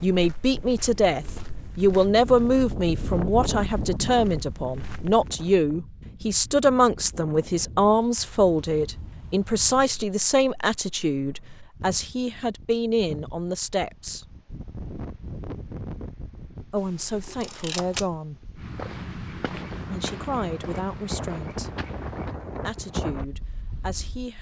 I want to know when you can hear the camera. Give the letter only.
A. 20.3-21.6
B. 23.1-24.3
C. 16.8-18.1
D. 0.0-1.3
C.